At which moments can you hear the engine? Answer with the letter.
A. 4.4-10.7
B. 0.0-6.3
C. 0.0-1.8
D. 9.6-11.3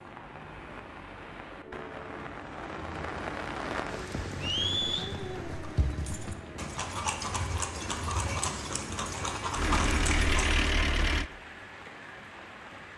D.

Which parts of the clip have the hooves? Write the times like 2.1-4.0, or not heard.
4.4-10.7.